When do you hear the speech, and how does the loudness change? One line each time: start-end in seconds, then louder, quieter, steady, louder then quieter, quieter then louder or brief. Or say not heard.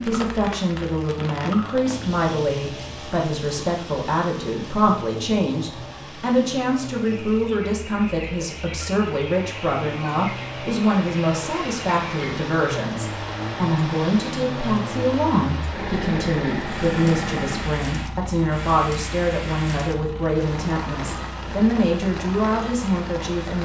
0.1-23.5 steady.